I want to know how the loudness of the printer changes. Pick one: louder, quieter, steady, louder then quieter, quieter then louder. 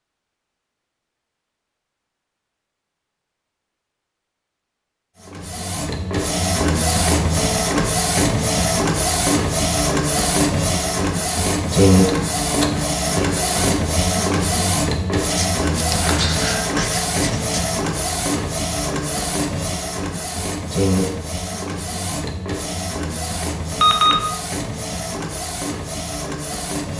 quieter.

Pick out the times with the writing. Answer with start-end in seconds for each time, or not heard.
15.3-17.6.